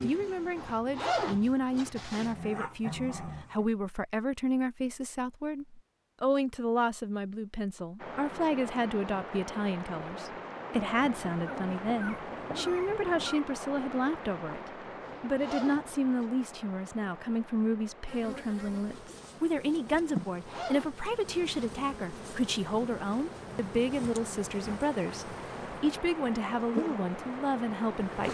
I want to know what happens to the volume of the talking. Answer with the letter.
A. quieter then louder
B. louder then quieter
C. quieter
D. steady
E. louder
D.